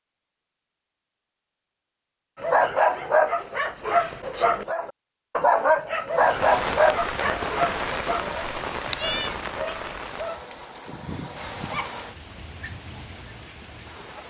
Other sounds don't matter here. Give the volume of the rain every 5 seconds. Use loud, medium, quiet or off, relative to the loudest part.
off, loud, medium.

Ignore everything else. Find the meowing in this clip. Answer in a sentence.
The meowing can be heard from 8.8 to 9.4 s.